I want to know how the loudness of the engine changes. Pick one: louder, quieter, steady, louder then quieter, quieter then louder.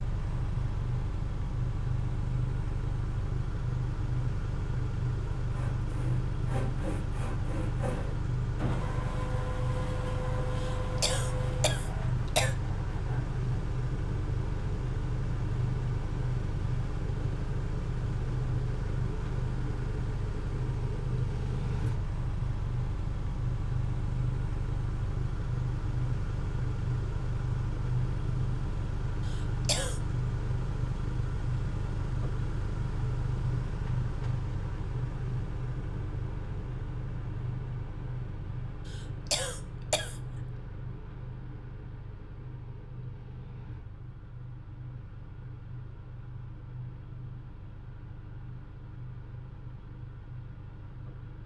quieter.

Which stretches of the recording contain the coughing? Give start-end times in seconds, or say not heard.
10.6-12.6, 29.2-30.0, 38.9-40.2.